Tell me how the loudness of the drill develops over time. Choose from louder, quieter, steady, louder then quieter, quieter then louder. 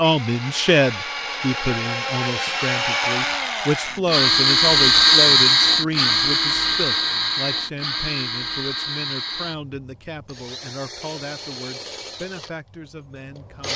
louder then quieter.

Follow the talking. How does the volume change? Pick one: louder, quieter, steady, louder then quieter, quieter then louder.
quieter.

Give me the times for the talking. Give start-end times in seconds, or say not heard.
0.0-13.7.